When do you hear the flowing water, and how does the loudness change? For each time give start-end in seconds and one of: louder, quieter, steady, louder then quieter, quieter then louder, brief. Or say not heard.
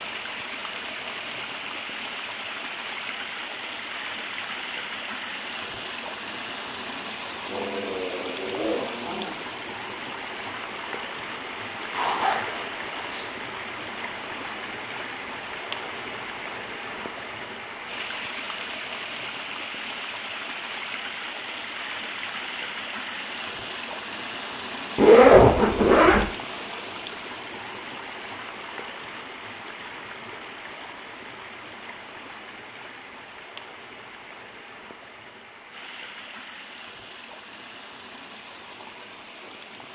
0.0-39.8 quieter.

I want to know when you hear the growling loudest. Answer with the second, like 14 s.
9 s.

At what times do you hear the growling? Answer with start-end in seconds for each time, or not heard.
7.5-9.4.